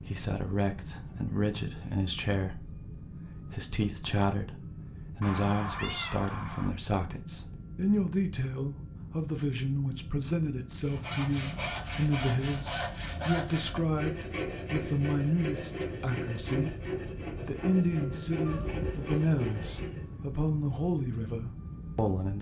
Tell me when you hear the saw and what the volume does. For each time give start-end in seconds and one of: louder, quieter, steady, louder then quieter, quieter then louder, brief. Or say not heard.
10.8-20.1 steady.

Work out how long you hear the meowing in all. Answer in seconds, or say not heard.
3 s.